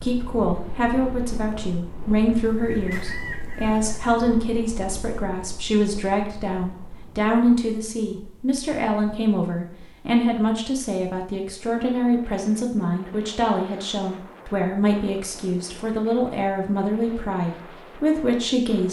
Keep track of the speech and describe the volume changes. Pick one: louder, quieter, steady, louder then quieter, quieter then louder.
steady.